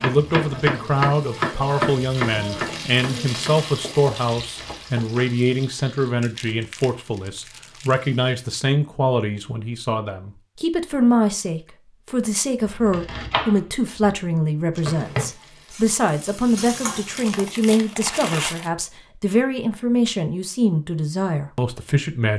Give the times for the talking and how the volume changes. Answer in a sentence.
The talking can be heard from 0.0 to 22.3 s, at a steady volume.